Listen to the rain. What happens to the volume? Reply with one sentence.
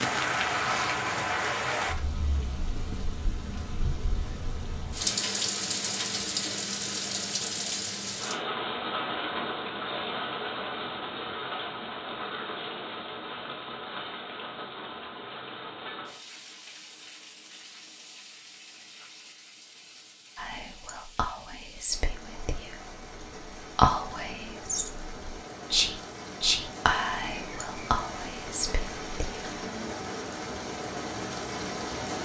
The loudness of the rain goes down, then up.